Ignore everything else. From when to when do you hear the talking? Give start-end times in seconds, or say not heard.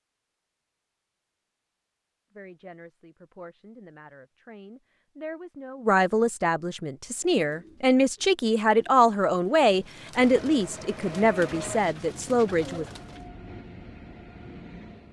2.4-12.8.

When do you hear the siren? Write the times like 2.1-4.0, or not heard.
not heard.